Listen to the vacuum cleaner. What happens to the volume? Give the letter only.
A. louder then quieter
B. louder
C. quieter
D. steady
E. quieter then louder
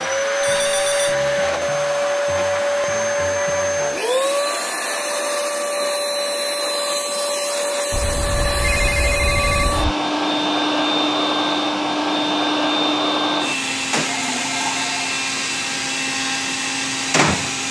D.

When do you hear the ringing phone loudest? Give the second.
9 s.